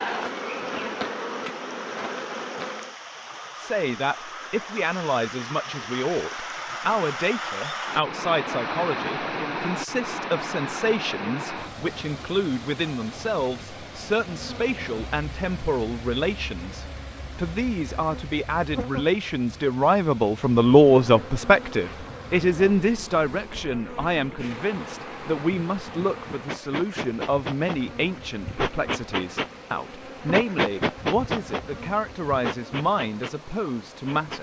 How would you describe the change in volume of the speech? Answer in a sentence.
The volume of the speech goes up, then down.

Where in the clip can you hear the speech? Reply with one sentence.
You can hear the speech from 3.5 to 34.3 s.